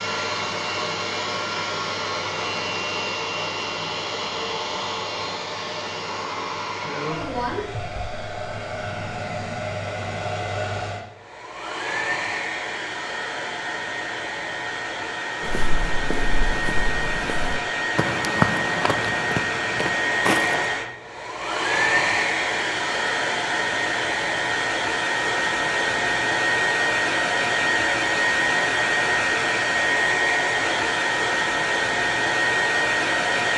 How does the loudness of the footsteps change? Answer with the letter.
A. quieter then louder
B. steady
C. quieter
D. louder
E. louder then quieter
E.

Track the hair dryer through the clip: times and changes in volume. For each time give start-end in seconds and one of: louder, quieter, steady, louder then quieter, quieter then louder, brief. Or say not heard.
0.0-33.5 louder.